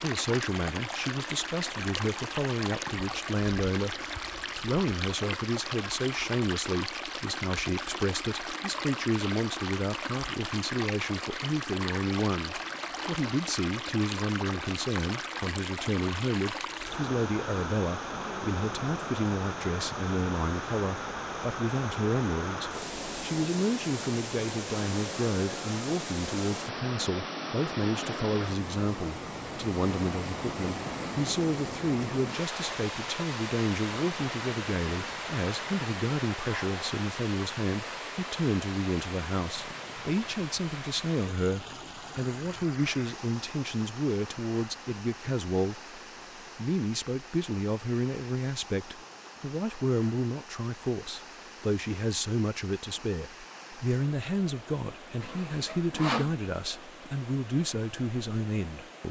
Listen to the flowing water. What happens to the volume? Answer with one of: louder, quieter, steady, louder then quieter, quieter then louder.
quieter.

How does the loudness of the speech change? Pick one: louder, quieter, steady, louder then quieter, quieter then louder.
steady.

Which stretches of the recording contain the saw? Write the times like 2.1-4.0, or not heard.
55.2-56.4.